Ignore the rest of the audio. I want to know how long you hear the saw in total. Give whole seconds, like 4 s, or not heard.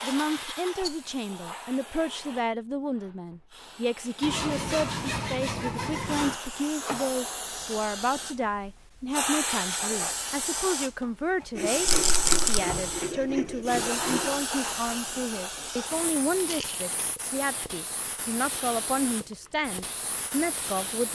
5 s.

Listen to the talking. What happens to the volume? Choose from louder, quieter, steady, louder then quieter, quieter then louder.
steady.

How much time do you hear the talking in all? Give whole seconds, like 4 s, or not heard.
21 s.